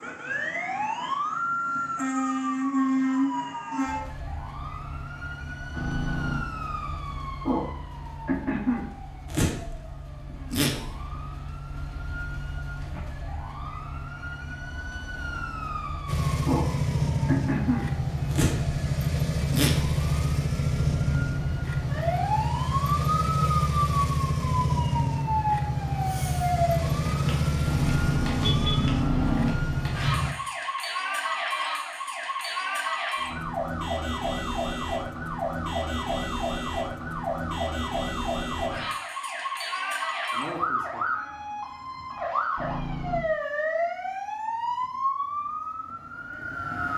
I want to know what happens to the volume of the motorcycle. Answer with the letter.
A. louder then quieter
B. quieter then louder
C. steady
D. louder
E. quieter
C.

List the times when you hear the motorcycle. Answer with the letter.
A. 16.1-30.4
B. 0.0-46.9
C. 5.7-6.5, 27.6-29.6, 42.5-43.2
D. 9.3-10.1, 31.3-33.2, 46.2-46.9
A.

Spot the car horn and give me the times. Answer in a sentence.
The car horn can be heard from 5.7 to 6.5 s, from 27.6 to 29.6 s and from 42.5 to 43.2 s.